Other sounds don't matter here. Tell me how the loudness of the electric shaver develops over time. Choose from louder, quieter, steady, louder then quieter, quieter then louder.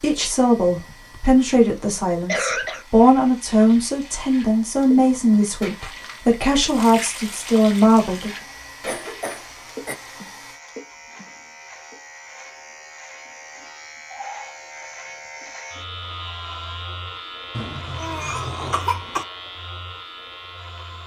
louder.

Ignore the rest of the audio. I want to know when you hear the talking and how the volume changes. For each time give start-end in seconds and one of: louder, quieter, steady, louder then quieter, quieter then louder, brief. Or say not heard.
0.0-8.3 steady.